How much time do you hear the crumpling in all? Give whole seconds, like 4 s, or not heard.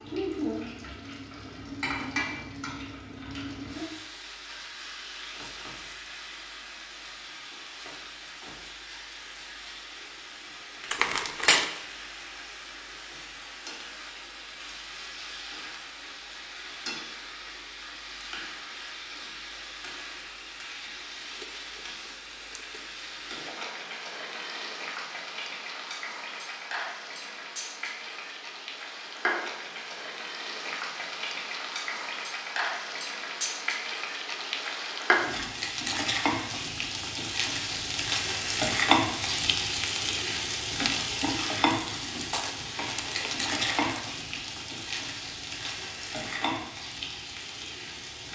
4 s.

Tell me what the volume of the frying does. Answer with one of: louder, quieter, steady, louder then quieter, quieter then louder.
louder.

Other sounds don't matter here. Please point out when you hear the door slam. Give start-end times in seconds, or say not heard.
not heard.